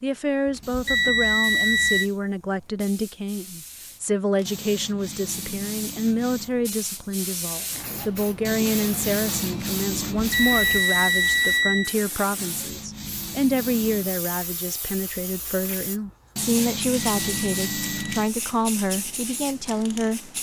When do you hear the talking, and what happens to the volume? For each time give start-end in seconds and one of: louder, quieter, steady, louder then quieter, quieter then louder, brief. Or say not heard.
0.0-20.3 steady.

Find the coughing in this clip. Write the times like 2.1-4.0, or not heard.
not heard.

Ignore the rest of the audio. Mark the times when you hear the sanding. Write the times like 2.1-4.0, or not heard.
0.6-2.2, 4.5-6.5, 8.4-10.5, 12.3-14.1, 16.4-18.4.